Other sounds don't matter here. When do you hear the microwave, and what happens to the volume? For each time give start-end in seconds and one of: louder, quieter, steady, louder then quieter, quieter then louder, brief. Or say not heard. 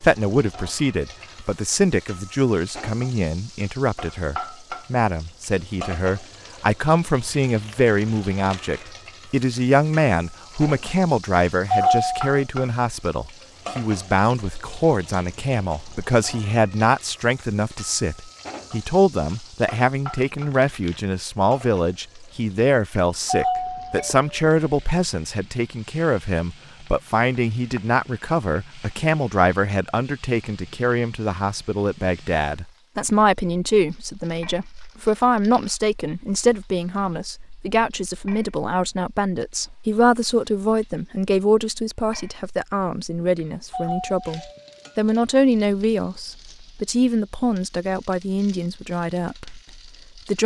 not heard.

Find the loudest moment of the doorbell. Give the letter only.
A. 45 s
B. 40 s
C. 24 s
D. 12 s
D.